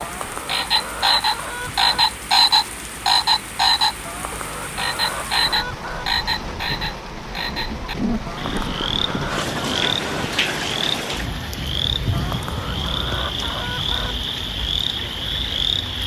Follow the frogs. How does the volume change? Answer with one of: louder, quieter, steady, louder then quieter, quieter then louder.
quieter.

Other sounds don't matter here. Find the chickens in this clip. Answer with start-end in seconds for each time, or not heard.
0.0-2.0, 4.0-6.0, 8.2-10.2, 12.1-14.2.